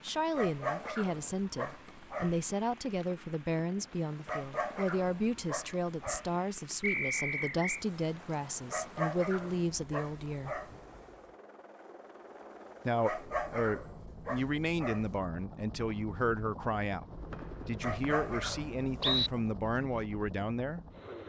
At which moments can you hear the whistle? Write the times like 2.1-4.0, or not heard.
6.8-7.8, 17.3-19.3.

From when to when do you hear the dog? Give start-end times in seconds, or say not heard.
0.3-2.5, 4.2-6.3, 8.7-10.8, 13.0-15.2, 17.8-19.4.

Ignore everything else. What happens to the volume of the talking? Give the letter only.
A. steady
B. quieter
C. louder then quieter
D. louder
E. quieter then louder
A.